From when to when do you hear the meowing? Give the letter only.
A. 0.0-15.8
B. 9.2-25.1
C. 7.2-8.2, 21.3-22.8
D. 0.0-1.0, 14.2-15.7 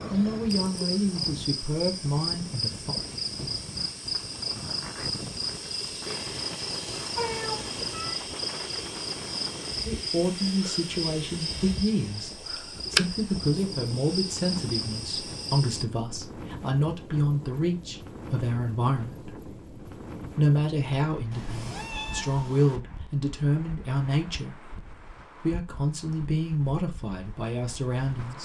C.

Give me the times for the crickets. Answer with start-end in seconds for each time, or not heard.
0.0-15.8.